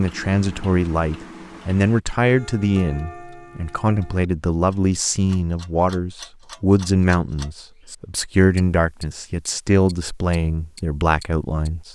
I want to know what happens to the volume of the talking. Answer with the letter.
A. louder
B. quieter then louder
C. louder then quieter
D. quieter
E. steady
E.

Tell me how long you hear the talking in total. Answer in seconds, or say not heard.
12 s.